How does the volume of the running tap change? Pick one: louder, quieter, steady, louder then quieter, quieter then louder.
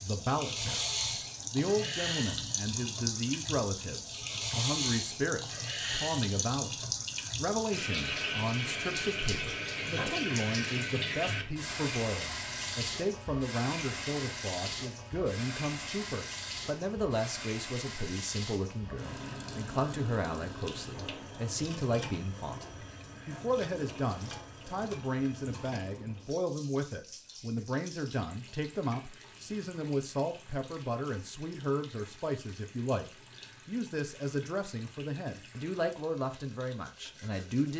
quieter.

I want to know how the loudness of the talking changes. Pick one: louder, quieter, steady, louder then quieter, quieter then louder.
steady.